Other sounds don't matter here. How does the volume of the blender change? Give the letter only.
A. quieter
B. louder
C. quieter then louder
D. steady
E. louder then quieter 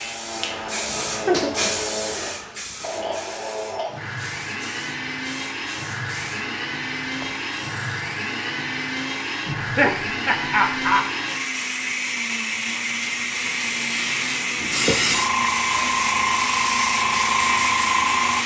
B.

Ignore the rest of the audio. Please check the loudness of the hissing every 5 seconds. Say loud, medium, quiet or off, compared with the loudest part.
medium, quiet, medium, loud.